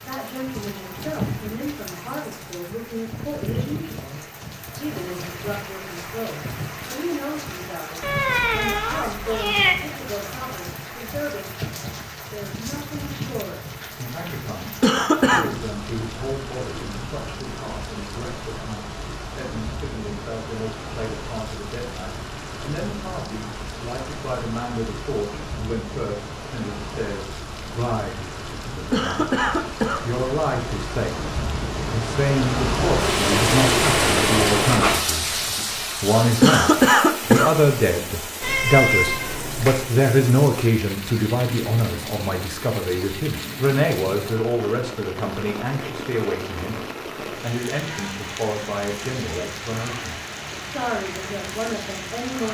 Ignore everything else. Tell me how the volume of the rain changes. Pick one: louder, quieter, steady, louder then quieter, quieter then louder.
louder then quieter.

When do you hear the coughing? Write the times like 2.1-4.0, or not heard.
14.8-15.5, 28.9-30.1, 36.4-37.5.